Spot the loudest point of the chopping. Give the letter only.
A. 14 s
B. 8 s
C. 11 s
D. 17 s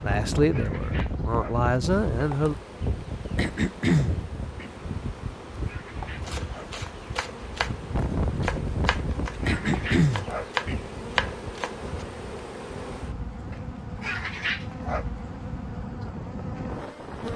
C.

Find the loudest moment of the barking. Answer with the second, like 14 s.
14 s.